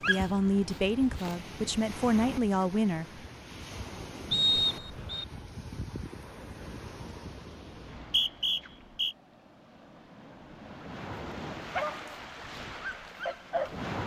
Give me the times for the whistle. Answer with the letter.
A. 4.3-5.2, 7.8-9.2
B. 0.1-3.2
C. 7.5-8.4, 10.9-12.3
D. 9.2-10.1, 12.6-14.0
A.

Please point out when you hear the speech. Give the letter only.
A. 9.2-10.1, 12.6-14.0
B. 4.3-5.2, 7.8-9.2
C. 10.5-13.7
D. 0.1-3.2
D.